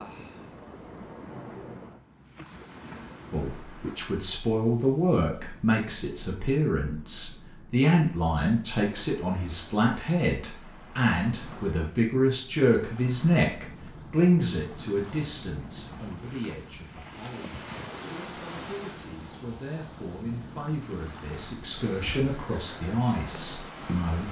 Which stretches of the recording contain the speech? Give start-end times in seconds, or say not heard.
3.3-24.2.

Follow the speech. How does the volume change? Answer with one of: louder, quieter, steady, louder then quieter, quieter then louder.
quieter then louder.